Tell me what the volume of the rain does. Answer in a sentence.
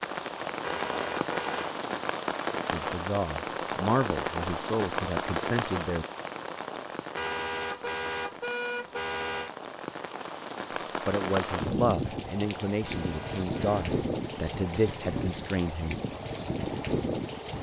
The volume of the rain goes down, then up.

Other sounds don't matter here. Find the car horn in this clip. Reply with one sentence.
The car horn can be heard from 0.6 to 1.8 s, from 7.2 to 9.5 s and from 12.8 to 13.8 s.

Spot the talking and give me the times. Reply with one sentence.
The talking can be heard from 2.7 to 6.0 s and from 11.1 to 16.0 s.